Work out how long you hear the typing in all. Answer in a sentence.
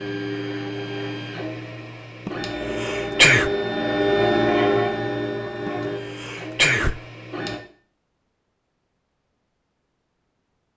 You can't hear the typing here.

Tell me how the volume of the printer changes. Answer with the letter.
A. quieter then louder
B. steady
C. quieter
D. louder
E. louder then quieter
E.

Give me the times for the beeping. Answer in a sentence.
You can't hear the beeping here.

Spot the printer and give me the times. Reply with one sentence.
The printer can be heard from 0.0 to 7.6 s.